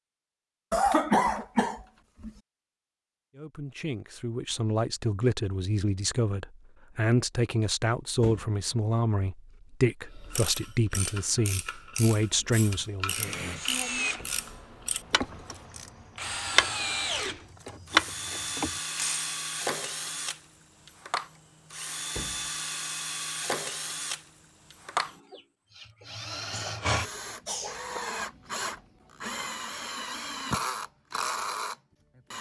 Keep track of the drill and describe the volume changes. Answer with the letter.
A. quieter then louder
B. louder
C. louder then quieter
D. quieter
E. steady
E.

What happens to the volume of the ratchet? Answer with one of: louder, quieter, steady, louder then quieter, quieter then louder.
louder.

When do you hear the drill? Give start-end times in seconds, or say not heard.
13.2-32.3.